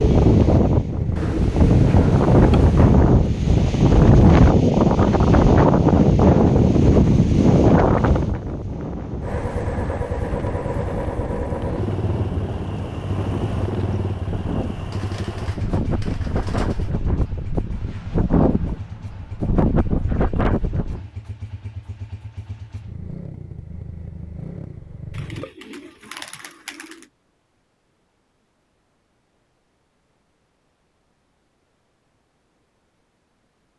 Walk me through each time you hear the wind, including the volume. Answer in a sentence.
The wind can be heard from 0.0 to 21.0 s, getting quieter then louder.